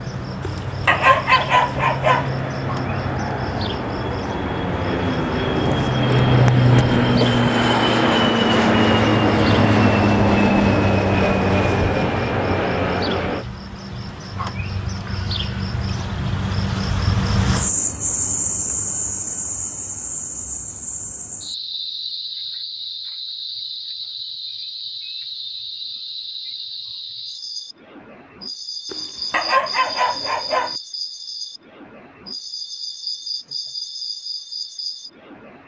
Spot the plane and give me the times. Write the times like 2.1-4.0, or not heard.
0.0-13.4.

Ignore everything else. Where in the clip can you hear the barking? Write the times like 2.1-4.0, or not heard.
0.4-2.3, 28.9-30.8.